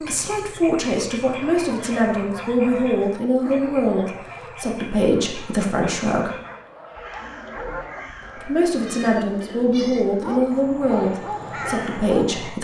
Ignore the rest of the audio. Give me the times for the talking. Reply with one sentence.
You can hear the talking from 0.0 to 6.3 s and from 8.3 to 12.6 s.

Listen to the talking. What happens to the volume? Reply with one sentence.
The loudness of the talking stays about the same.